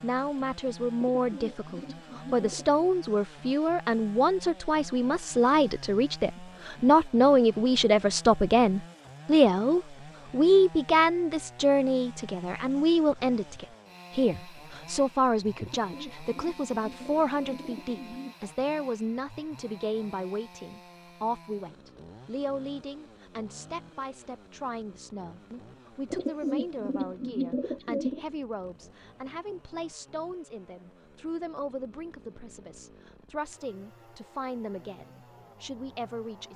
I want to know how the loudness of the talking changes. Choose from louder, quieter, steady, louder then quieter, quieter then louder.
quieter.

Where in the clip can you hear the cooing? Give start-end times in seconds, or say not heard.
1.1-2.9, 15.6-18.4, 26.1-28.2.